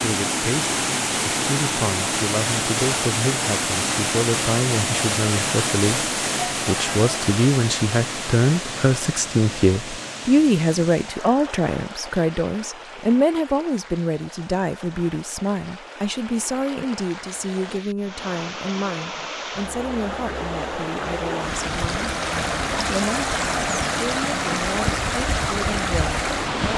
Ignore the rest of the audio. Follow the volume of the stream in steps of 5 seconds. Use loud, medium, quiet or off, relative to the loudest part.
loud, loud, quiet, medium, loud, loud.